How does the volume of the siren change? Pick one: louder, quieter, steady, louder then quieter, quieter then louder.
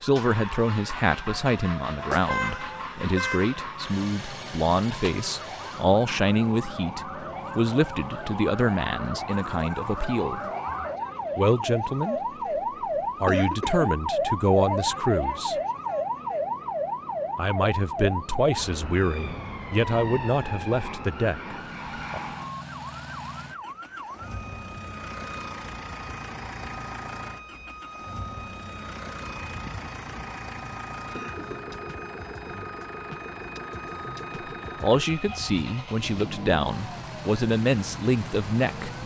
louder then quieter.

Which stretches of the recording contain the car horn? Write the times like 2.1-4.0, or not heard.
1.9-3.6.